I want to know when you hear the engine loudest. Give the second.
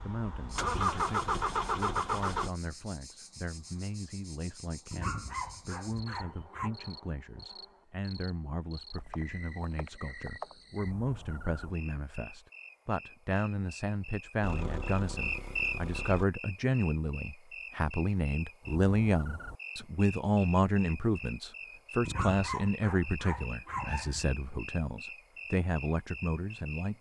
1 s.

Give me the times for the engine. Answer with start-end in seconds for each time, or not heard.
0.0-2.5, 14.4-16.2.